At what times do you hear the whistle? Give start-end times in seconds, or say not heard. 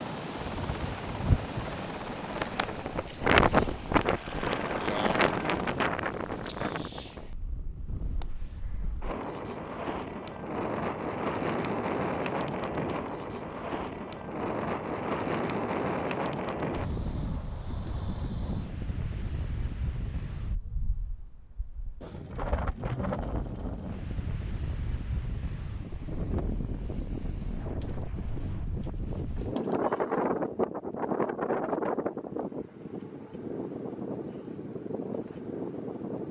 not heard.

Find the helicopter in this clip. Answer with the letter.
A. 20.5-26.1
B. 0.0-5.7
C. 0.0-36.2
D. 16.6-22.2
B.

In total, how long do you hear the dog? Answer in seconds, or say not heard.
not heard.